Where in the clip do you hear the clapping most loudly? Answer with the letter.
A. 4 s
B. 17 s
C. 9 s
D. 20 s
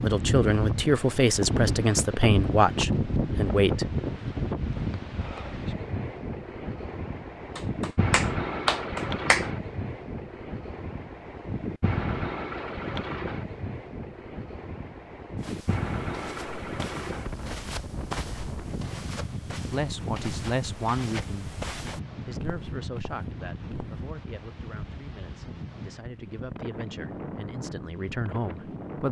C.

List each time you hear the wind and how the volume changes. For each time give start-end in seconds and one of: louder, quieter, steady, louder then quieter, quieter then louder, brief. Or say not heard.
0.0-29.0 quieter.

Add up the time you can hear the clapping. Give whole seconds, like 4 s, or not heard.
2 s.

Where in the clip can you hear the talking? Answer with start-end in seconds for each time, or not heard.
0.0-3.9, 19.7-21.6, 22.2-29.0.